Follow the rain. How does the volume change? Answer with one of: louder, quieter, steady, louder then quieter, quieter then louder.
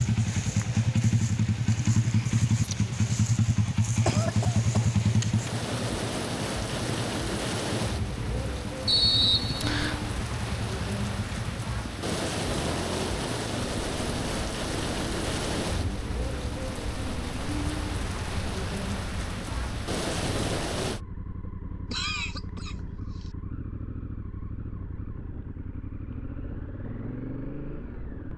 louder.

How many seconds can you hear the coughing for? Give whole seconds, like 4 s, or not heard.
2 s.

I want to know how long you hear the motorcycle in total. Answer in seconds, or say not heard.
28 s.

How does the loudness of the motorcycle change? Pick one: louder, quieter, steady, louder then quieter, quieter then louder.
quieter.